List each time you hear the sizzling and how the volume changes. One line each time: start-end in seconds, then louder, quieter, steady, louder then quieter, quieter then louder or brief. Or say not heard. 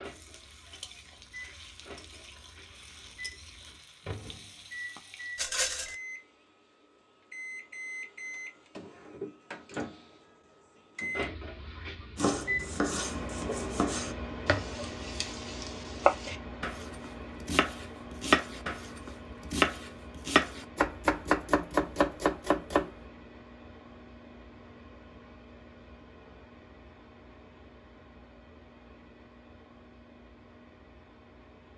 0.0-5.5 steady.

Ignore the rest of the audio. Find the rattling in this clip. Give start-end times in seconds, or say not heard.
5.3-6.0.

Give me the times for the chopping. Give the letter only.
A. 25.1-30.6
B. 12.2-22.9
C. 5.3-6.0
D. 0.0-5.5
B.